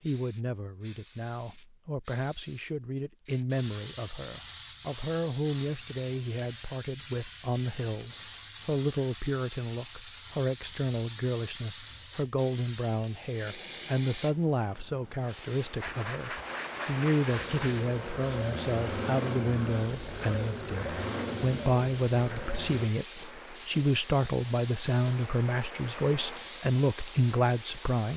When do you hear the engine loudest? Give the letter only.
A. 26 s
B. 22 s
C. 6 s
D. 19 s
D.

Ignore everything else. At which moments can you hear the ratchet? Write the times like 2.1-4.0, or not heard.
not heard.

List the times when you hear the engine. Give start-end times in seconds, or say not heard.
17.2-22.9.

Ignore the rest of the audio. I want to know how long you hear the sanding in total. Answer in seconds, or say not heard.
2 s.